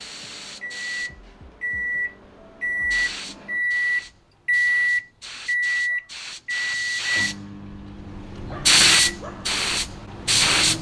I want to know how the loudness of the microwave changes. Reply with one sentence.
The volume of the microwave goes up, then down.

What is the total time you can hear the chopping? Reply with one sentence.
The chopping can't be heard in this clip.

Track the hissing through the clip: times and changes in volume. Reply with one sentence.
The hissing can be heard from 0.0 to 10.7 s, getting louder.